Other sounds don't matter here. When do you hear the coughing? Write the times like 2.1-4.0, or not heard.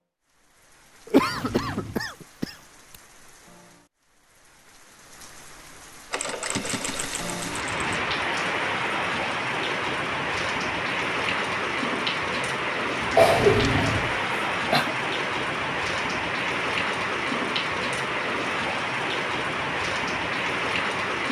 1.1-2.5, 13.1-14.9.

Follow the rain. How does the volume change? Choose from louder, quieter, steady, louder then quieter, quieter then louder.
louder.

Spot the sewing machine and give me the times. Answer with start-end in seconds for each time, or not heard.
6.1-8.0.